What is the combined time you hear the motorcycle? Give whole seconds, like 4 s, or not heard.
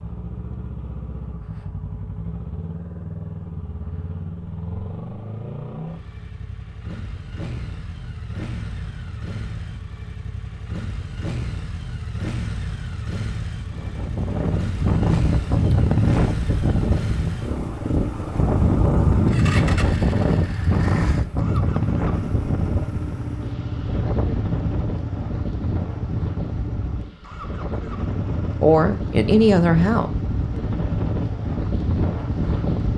33 s.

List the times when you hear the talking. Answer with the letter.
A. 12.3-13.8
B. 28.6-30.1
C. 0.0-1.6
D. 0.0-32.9
B.